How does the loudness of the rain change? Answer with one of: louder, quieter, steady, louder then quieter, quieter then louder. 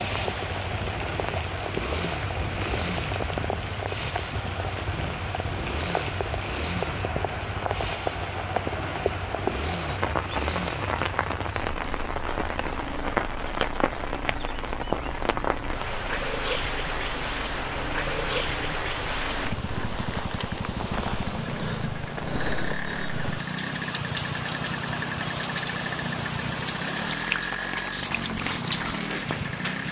steady.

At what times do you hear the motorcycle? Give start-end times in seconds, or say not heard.
0.0-29.8.